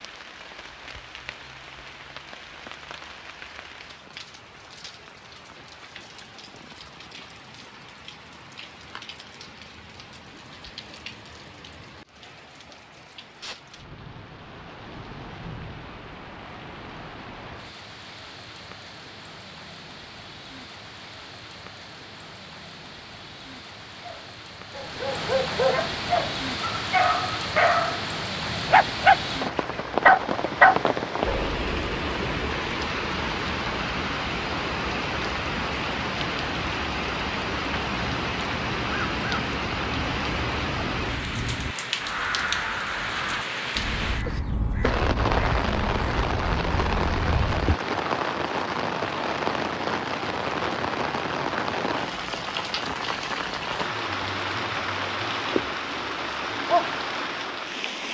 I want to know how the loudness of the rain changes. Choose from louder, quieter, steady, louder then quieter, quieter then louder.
louder.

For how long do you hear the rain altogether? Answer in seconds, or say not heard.
58 s.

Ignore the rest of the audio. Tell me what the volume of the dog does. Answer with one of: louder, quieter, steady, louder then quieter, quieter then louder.
louder.